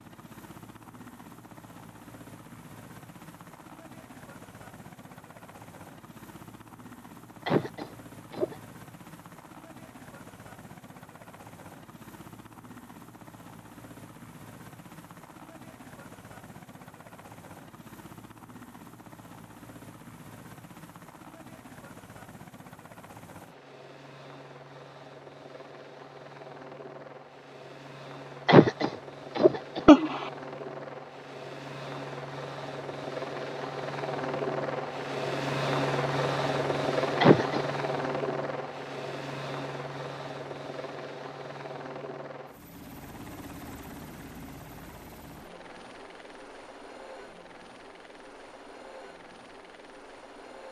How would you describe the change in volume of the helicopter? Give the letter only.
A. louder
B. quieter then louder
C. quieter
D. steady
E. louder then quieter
E.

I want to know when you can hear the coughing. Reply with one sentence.
You can hear the coughing from 7.5 to 8.6 s, from 28.4 to 30.3 s and from 37.2 to 37.7 s.